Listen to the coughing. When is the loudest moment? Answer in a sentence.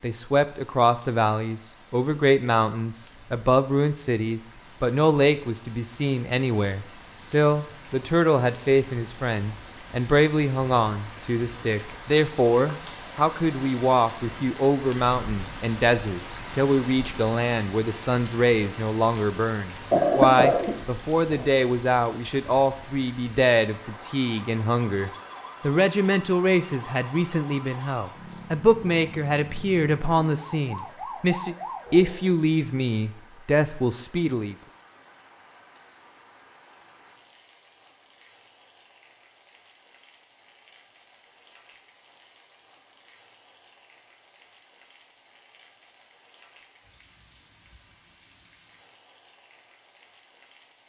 The loudest moment of the coughing is at 20 seconds.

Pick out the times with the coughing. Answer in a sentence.
You can hear the coughing from 19.9 to 21.4 s.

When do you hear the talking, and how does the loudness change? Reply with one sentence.
You can hear the talking from 0.0 to 34.5 s, at a steady volume.